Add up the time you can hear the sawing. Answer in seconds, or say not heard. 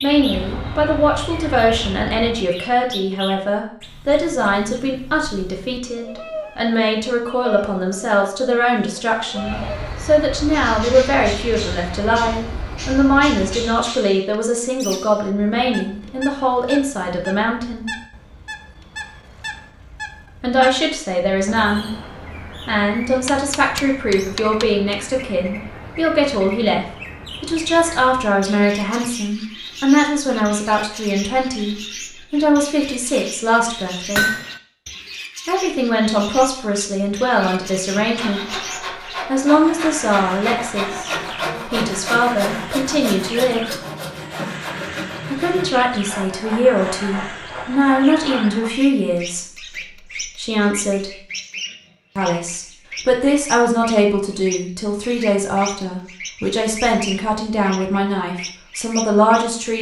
11 s.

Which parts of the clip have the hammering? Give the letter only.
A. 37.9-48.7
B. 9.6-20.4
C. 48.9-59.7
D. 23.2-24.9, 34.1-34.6
D.